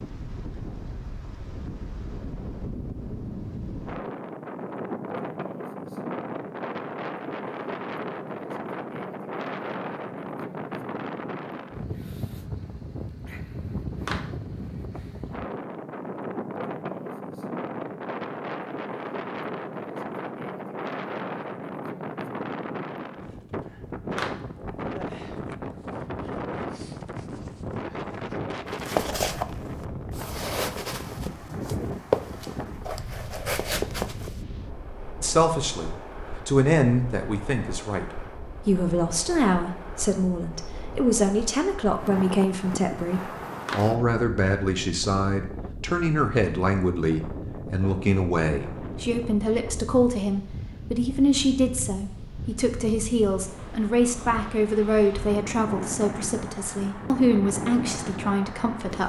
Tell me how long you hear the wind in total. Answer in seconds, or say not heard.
59 s.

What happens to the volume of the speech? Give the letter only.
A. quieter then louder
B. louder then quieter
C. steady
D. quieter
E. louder
C.